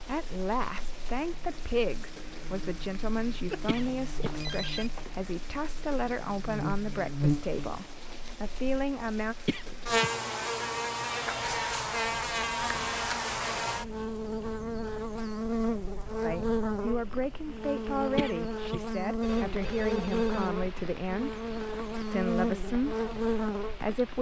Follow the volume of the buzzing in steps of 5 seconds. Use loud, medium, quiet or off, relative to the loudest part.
quiet, loud, loud, loud, loud.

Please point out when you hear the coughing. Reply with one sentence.
The coughing can be heard from 3.6 to 4.3 s, from 9.4 to 10.1 s and from 18.1 to 18.8 s.